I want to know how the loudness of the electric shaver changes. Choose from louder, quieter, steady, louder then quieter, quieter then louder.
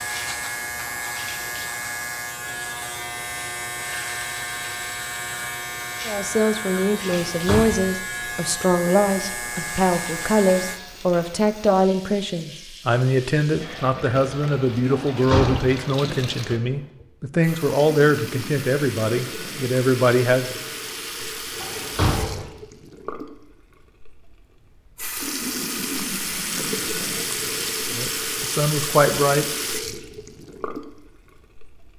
steady.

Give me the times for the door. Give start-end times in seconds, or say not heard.
7.3-7.7, 14.9-15.8, 21.6-22.4.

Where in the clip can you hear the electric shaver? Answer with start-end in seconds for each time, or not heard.
0.0-10.8.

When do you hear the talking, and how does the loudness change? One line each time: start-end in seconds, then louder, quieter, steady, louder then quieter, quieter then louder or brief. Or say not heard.
6.0-20.6 steady
27.9-29.4 brief.